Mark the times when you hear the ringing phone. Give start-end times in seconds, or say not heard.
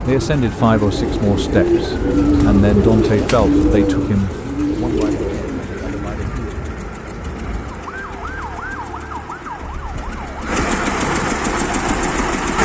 not heard.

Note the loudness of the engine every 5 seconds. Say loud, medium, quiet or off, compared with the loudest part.
quiet, quiet, loud.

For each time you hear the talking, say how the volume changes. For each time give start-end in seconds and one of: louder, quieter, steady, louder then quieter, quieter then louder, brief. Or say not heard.
0.1-6.6 quieter.